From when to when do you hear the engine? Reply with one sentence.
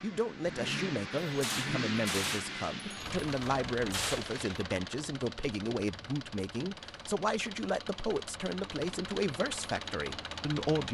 The engine can be heard from 0.0 to 10.8 s.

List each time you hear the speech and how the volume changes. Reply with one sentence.
The speech can be heard from 0.0 to 10.8 s, at a steady volume.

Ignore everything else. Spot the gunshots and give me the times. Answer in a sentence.
The gunshots can be heard from 1.1 to 4.6 s.